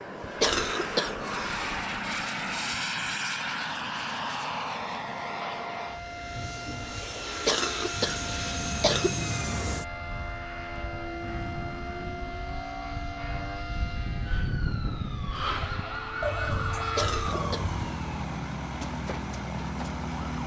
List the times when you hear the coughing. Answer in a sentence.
The coughing can be heard from 0.4 to 1.5 s, from 7.5 to 9.2 s and from 16.9 to 17.6 s.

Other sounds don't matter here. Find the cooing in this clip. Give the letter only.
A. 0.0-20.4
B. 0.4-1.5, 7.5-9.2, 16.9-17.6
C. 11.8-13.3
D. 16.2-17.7
D.